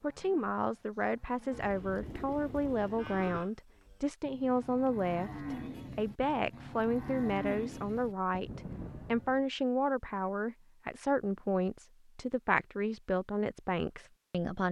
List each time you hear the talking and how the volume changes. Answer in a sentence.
The talking can be heard from 0.0 to 14.6 s, at a steady volume.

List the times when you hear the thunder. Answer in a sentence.
You can't hear the thunder here.